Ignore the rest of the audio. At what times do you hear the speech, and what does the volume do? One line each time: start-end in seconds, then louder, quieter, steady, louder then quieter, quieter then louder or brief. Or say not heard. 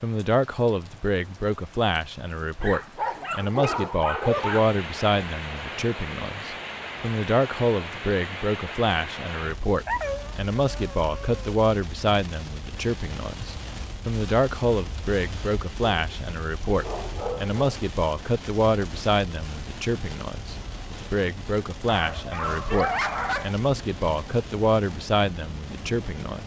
0.0-26.4 steady.